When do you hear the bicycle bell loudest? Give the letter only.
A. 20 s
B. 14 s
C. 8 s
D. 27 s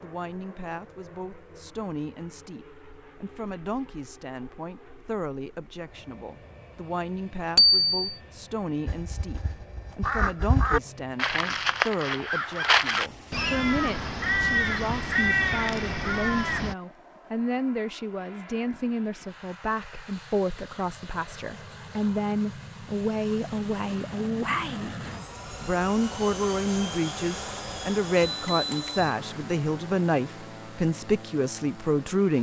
C.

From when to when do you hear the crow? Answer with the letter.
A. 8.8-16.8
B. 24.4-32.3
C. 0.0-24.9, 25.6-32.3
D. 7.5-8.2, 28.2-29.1
A.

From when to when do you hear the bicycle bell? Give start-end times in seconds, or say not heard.
7.5-8.2, 28.2-29.1.